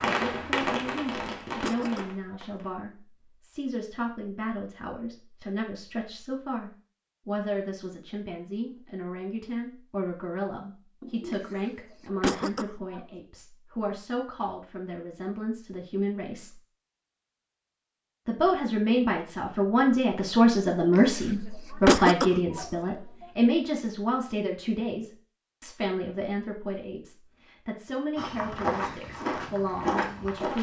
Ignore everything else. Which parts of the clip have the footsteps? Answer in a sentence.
You can hear the footsteps from 28.1 to 30.5 s.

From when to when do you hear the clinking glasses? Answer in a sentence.
You can't hear the clinking glasses here.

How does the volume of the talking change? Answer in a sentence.
The loudness of the talking goes up, then down.